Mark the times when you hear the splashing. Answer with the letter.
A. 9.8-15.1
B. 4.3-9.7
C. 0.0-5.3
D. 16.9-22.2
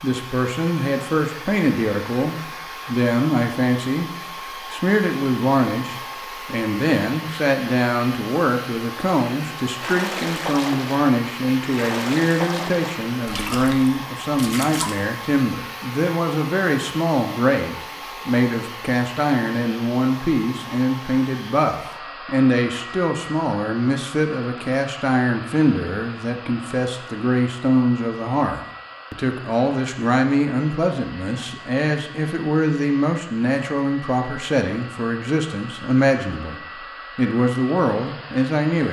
A.